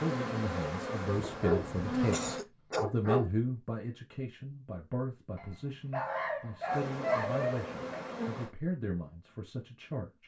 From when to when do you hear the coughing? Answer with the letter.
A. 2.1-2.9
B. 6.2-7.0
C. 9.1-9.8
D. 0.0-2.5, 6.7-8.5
A.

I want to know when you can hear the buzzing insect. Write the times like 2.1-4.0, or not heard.
0.0-2.5, 6.7-8.5.